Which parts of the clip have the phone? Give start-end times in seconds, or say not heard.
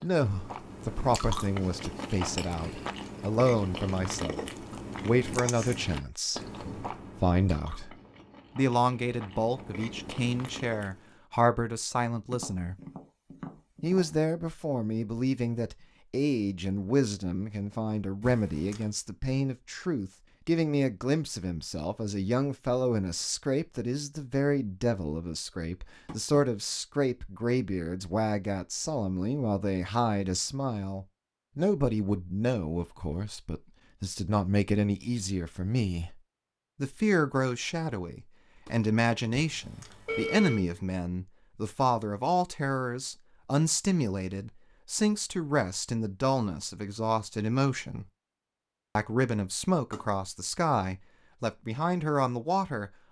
18.2-18.9, 39.4-40.6.